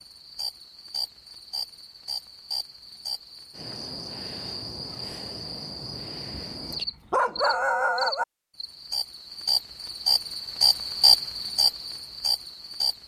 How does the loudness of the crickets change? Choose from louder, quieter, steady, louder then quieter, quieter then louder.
louder.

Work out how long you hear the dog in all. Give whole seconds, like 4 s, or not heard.
2 s.